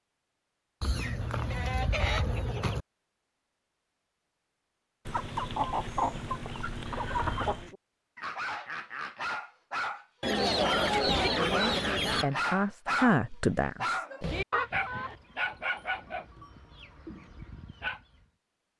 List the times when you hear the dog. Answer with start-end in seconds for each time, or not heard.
7.5-18.2.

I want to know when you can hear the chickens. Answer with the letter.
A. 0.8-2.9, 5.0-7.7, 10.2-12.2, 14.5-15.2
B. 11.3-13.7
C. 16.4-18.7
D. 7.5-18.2
A.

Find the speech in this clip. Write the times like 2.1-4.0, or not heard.
11.3-13.7.